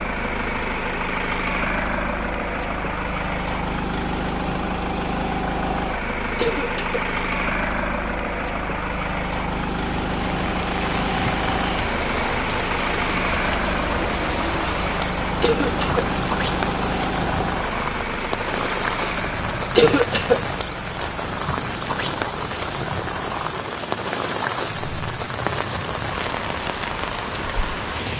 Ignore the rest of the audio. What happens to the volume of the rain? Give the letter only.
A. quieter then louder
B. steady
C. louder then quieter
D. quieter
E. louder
B.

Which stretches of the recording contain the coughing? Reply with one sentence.
You can hear the coughing from 6.3 to 7.0 s, from 15.4 to 16.1 s and from 19.8 to 20.4 s.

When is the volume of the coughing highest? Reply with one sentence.
The volume of the coughing peaks at 20 seconds.